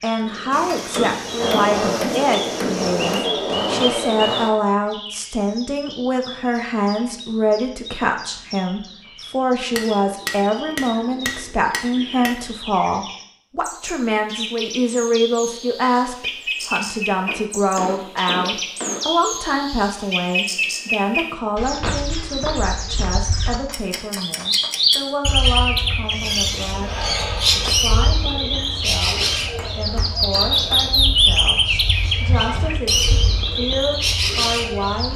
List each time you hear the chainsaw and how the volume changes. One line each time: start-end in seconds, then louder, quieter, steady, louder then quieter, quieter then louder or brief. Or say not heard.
0.1-4.5 louder.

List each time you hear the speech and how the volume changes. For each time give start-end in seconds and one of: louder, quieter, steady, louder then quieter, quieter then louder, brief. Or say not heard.
0.0-35.1 quieter.